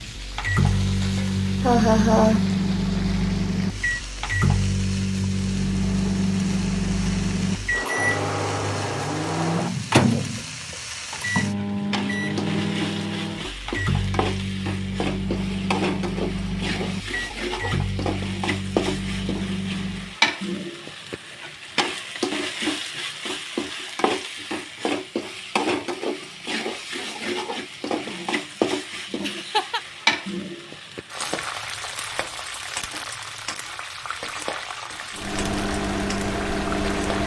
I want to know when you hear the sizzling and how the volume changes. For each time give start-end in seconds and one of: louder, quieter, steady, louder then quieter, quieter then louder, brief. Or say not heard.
0.0-37.2 louder.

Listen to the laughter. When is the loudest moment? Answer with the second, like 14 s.
2 s.